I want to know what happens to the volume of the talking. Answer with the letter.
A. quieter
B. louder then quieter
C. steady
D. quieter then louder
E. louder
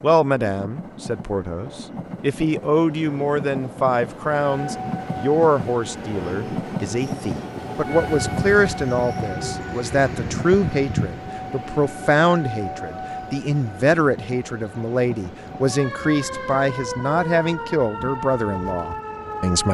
C.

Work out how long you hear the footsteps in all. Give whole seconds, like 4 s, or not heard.
not heard.